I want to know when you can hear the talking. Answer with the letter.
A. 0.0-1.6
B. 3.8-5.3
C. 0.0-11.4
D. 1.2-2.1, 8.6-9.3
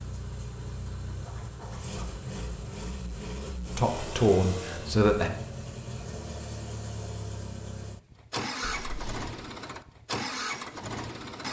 B.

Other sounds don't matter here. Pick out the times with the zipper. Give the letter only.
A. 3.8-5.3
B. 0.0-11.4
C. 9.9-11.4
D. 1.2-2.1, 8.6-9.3
D.